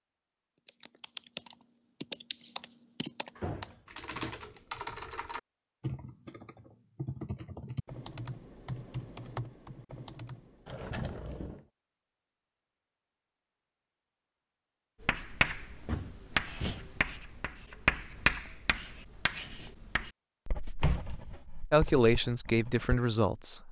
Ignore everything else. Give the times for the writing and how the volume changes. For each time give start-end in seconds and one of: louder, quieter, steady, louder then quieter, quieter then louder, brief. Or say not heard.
15.0-23.0 quieter.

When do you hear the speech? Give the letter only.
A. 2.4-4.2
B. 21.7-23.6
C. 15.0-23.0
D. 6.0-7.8
B.